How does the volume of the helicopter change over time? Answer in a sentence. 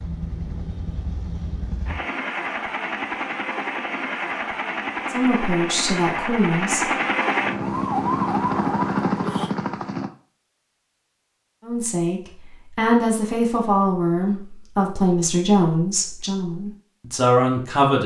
The loudness of the helicopter goes up.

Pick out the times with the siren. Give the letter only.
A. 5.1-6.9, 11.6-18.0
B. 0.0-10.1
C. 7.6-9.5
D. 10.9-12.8
C.